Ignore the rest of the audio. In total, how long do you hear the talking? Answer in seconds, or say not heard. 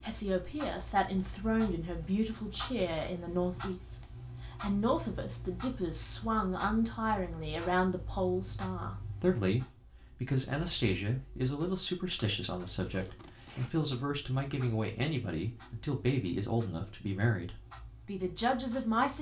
19 s.